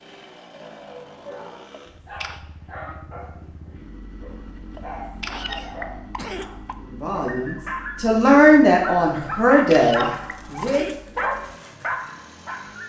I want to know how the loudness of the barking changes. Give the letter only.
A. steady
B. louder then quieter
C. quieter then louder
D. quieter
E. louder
E.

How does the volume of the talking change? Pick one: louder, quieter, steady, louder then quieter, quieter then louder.
louder then quieter.